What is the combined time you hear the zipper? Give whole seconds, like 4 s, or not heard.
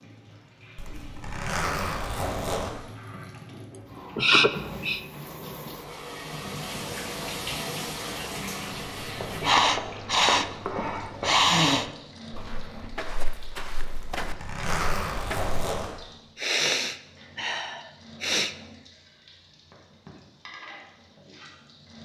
4 s.